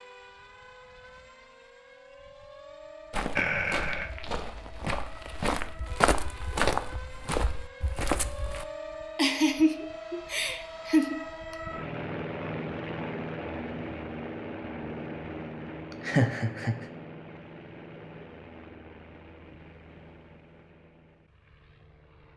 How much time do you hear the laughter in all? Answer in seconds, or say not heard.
4 s.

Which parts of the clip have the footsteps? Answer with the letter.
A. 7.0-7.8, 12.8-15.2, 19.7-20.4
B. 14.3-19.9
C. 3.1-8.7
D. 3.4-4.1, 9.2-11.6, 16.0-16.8
C.